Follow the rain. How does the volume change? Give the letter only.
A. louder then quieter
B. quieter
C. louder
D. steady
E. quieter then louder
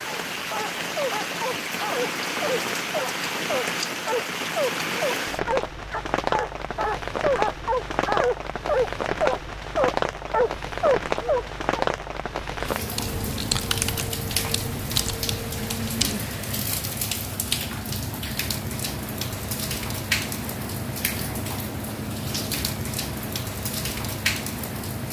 D.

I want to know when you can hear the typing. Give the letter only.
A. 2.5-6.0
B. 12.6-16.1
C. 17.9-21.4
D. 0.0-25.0
B.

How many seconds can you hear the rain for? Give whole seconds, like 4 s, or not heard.
25 s.